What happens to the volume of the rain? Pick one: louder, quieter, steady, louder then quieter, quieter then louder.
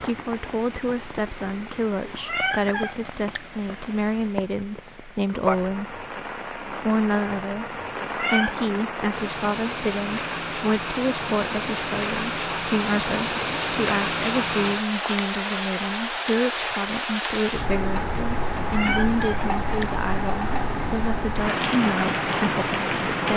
louder.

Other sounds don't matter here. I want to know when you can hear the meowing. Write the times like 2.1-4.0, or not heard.
2.2-3.4, 8.0-8.7, 18.8-19.9.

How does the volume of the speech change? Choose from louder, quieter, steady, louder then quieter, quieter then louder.
steady.